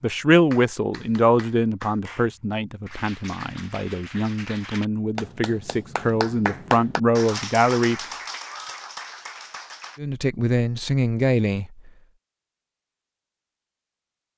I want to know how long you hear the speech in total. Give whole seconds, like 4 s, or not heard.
10 s.